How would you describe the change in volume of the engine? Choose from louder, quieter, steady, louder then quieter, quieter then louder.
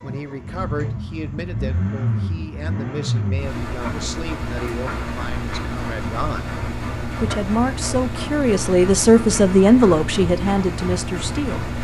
steady.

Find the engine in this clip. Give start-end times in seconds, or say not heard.
0.0-11.7.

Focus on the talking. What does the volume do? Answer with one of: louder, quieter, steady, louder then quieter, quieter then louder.
louder.